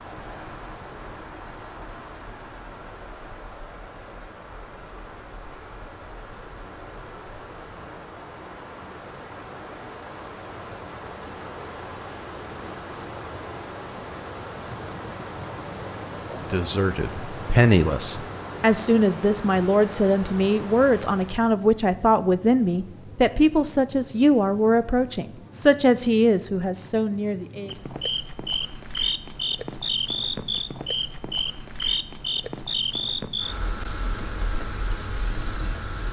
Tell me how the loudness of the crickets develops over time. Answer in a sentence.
The volume of the crickets goes up.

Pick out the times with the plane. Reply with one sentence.
You can't hear the plane here.